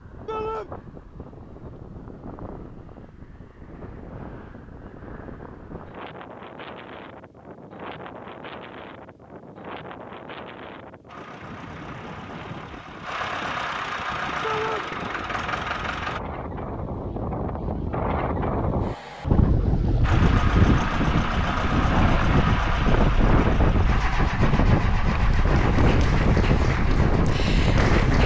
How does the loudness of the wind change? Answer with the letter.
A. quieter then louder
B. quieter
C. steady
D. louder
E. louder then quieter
D.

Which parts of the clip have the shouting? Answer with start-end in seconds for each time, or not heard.
0.2-0.7, 14.4-14.8.